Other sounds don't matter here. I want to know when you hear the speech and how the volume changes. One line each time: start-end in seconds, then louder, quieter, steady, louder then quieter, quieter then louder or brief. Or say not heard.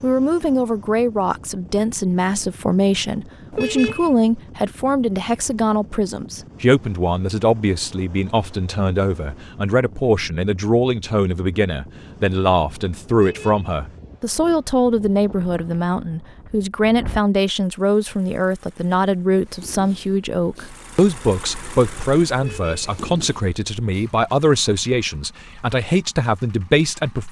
0.0-27.2 steady.